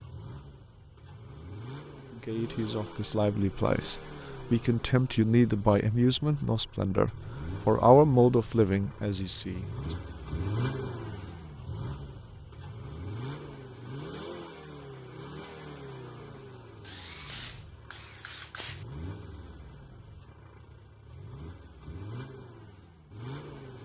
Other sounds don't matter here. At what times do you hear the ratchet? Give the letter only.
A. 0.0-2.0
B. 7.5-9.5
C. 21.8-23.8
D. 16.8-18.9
D.